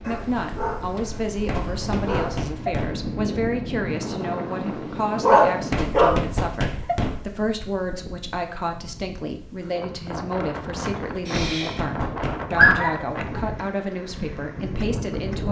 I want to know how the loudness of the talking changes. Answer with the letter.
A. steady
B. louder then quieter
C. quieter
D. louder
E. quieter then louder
A.